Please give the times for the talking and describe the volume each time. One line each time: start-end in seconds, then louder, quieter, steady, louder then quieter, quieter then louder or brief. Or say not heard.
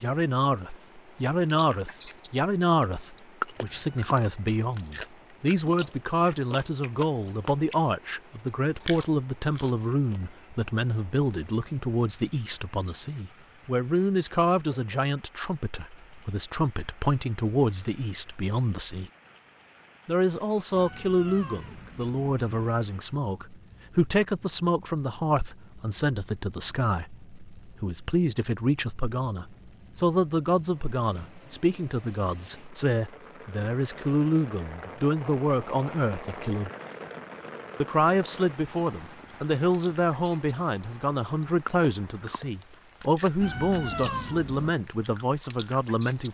0.0-19.1 steady
20.1-36.7 steady
37.8-46.2 steady.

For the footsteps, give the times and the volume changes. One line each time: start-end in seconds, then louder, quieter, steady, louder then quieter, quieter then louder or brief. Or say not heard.
not heard.